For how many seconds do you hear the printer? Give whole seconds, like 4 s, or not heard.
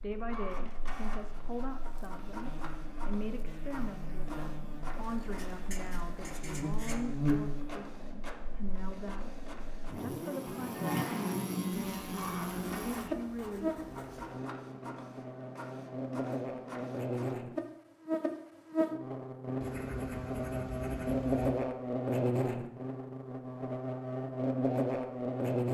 17 s.